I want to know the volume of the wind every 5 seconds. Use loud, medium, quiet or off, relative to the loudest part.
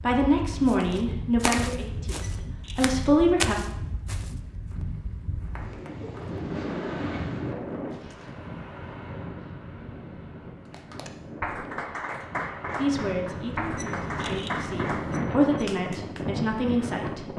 medium, loud, medium, loud.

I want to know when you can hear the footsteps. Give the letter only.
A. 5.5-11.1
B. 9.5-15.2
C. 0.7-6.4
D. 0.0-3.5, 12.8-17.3
C.